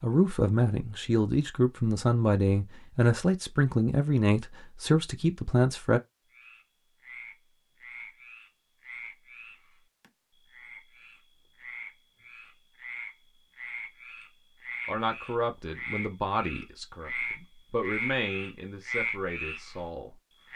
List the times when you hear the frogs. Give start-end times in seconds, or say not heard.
6.3-19.9.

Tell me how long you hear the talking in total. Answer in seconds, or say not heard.
11 s.